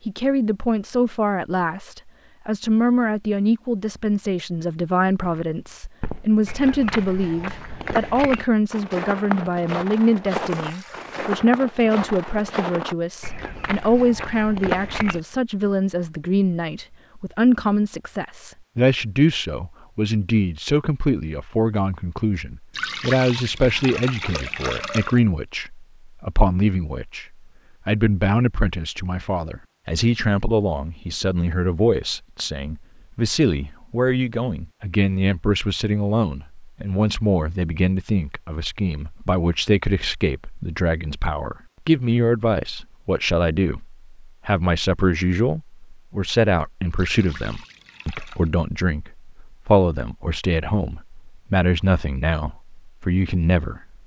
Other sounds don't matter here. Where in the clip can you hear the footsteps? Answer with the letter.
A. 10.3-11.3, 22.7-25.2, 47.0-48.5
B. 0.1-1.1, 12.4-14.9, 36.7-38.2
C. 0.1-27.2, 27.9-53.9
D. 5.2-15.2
D.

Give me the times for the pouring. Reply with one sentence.
The pouring can be heard from 10.3 to 11.3 s, from 22.7 to 25.2 s and from 47.0 to 48.5 s.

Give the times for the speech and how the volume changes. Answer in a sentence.
You can hear the speech from 0.1 to 27.2 s, at a steady volume; and from 27.9 to 53.9 s, at a steady volume.